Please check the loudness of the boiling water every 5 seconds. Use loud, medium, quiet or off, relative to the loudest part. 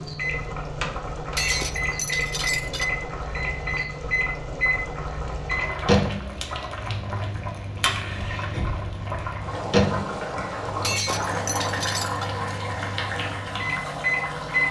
medium, loud, loud.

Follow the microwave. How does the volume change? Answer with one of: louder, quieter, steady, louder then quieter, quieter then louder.
steady.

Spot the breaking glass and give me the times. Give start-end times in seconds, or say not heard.
1.4-2.9, 10.8-12.3.